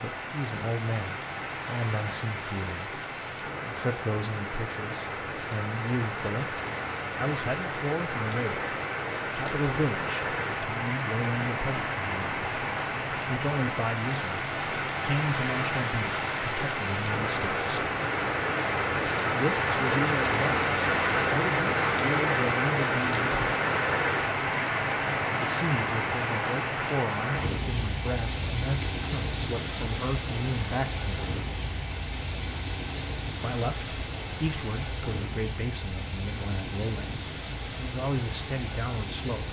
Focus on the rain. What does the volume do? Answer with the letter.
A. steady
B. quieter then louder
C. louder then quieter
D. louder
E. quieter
C.